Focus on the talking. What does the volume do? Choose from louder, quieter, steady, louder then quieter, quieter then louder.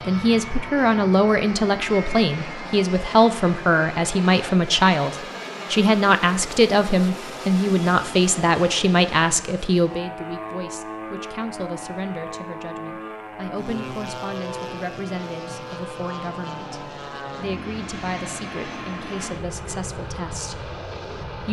quieter.